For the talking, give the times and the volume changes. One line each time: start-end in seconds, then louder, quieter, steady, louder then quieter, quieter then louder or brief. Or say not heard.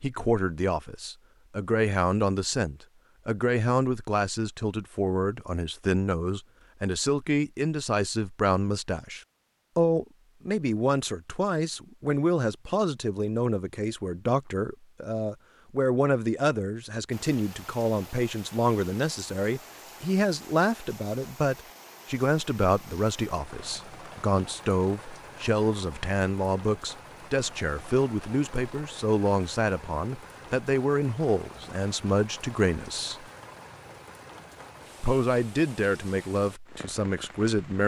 0.0-33.2 steady
35.0-37.8 brief.